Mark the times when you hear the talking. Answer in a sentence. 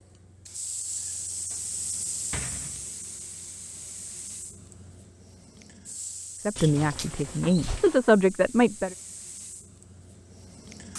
You can hear the talking from 6.5 to 8.9 s.